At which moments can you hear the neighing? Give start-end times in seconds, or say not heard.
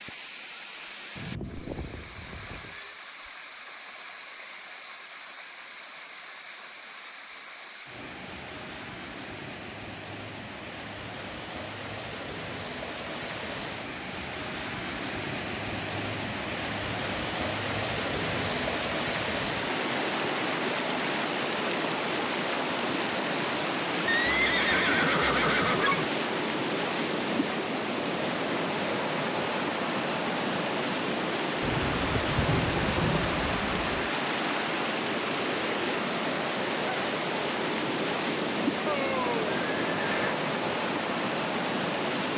1.1-3.0, 24.1-26.1, 38.9-40.4.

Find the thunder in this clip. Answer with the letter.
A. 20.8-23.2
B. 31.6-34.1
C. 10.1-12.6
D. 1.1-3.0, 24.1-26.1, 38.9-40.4
B.